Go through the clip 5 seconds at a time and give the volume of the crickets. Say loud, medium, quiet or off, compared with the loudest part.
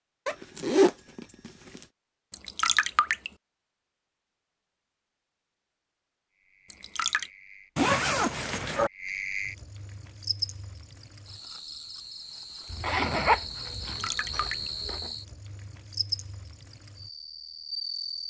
off, loud, loud, loud.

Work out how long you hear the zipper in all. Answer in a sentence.
The zipper can be heard for 5 seconds in total.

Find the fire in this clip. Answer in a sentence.
You can't hear the fire here.